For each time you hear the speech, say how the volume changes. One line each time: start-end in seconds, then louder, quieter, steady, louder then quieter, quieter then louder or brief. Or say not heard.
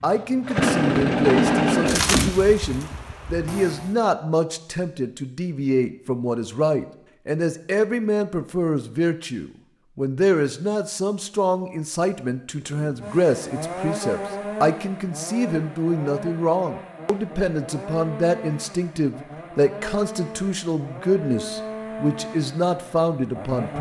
0.0-23.7 steady.